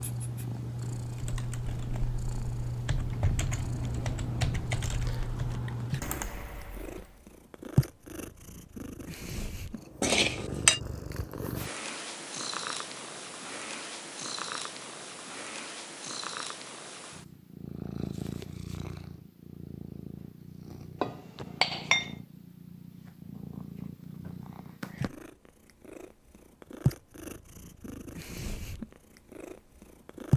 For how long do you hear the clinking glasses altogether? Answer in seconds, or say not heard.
2 s.